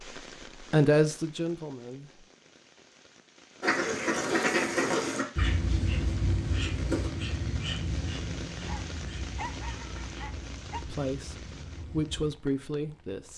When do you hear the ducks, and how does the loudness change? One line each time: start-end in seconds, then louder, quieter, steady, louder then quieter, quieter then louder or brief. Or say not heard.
3.6-12.3 quieter.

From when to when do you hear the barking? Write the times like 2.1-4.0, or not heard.
8.7-10.8.